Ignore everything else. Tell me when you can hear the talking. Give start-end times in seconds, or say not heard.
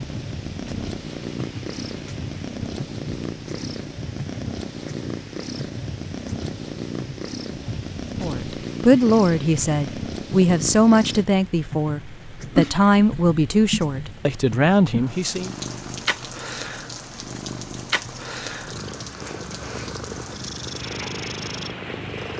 8.2-15.5.